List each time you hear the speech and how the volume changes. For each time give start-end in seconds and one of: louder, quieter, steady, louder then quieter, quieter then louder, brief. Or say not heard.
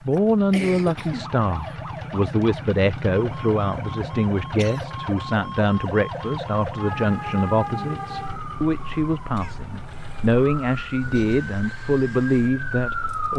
0.0-13.3 steady.